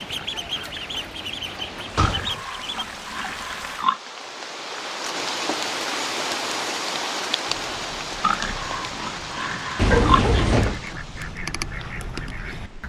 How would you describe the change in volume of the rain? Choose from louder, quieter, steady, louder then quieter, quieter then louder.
louder then quieter.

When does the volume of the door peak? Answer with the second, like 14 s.
10 s.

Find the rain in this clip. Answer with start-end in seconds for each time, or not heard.
0.0-12.8.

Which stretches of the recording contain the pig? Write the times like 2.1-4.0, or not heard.
1.9-4.0, 8.2-10.2.